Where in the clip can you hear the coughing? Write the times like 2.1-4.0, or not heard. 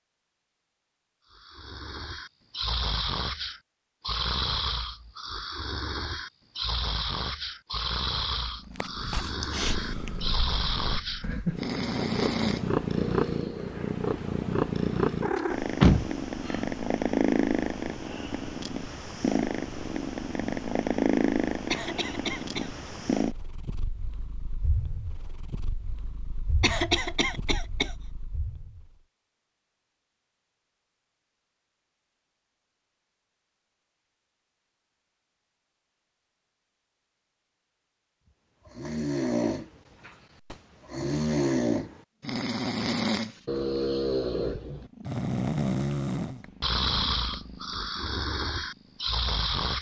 21.7-22.7, 26.6-27.9.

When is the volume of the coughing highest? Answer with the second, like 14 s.
27 s.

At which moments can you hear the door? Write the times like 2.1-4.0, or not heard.
15.3-16.6.